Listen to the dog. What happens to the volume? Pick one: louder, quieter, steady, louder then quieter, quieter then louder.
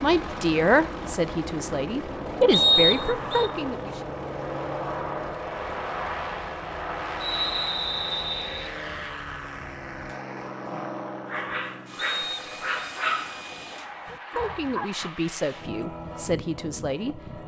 louder then quieter.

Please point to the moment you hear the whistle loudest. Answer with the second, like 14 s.
3 s.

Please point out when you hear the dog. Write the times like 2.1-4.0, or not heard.
10.1-15.1.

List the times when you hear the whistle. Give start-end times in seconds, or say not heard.
2.5-3.5, 7.2-8.7, 11.9-12.9.